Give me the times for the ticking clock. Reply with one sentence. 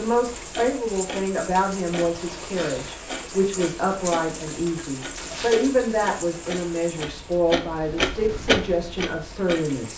The ticking clock can be heard from 0.0 to 9.8 s.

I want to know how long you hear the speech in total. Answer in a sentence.
The speech can be heard for 10 seconds in total.